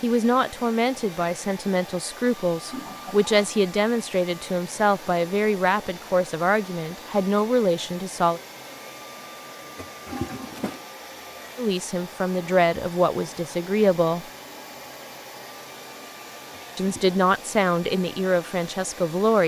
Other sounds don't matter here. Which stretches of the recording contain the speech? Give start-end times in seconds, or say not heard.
0.0-8.4, 11.6-14.2, 16.8-19.4.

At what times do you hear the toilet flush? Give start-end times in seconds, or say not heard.
2.6-3.5, 9.8-10.8, 16.8-17.2.